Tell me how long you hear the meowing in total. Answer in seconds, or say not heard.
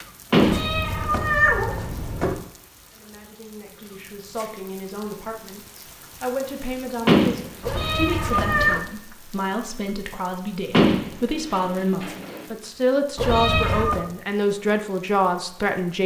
4 s.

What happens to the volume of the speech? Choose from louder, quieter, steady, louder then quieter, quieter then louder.
louder.